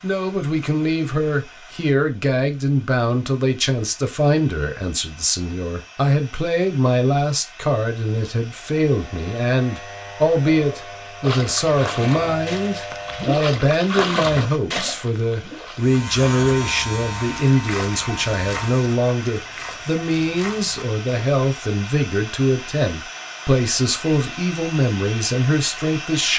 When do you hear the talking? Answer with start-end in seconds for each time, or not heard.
0.0-26.3.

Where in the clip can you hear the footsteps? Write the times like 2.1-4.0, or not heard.
not heard.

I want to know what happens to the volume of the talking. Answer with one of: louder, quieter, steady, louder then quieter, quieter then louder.
steady.